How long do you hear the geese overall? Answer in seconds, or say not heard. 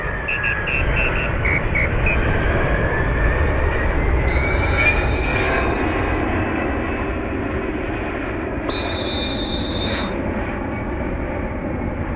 not heard.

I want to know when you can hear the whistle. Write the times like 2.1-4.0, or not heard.
0.2-2.3, 4.2-6.2, 8.7-10.2.